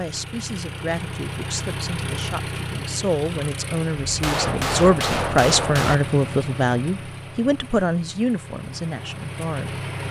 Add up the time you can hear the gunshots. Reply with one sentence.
The gunshots can be heard for 2 seconds in total.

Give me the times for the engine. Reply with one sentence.
The engine can be heard from 0.0 to 10.0 s.